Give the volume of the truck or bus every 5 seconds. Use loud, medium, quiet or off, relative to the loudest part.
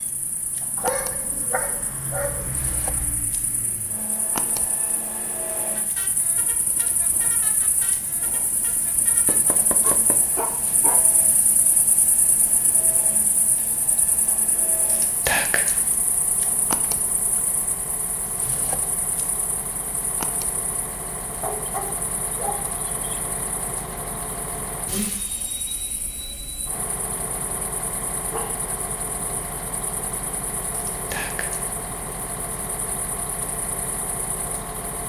medium, medium, medium, medium, loud, loud, loud.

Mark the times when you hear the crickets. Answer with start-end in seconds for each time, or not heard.
0.0-35.0.